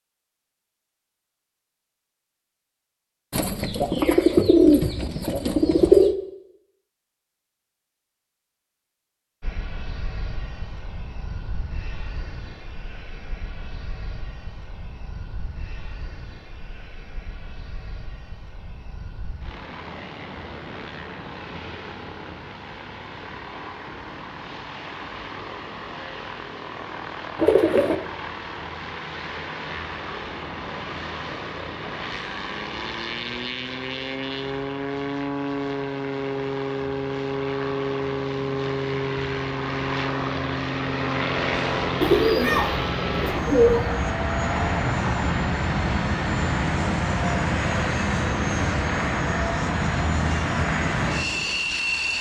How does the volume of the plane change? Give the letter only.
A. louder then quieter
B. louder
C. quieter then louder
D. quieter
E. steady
B.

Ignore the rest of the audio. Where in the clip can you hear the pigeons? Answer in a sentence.
You can hear the pigeons from 3.3 to 6.2 s, from 27.4 to 27.9 s and from 42.0 to 43.9 s.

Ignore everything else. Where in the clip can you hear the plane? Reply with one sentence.
The plane can be heard from 9.4 to 52.1 s.